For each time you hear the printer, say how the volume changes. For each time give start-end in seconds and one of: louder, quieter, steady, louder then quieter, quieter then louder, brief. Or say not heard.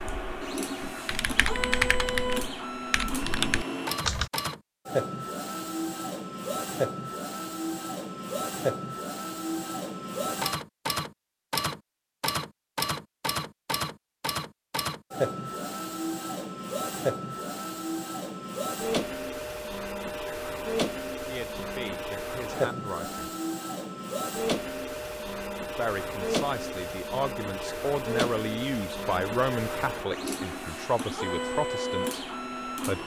0.0-33.0 steady.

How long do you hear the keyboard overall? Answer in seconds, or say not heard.
4 s.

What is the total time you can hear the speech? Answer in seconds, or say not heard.
9 s.